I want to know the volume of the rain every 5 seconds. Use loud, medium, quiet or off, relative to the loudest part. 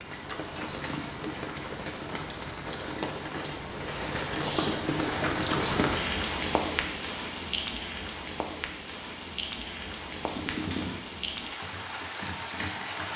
loud, loud, medium.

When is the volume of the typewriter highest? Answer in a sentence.
The loudest moment of the typewriter is at 11 seconds.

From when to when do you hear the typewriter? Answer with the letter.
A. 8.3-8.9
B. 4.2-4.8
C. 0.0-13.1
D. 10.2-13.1
D.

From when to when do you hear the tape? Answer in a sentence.
You can hear the tape from 4.2 to 4.8 s.